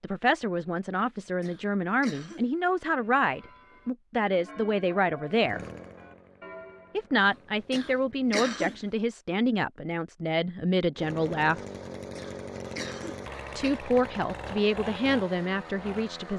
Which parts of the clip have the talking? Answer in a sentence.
The talking can be heard from 0.0 to 5.7 s, from 7.0 to 11.6 s and from 13.6 to 16.3 s.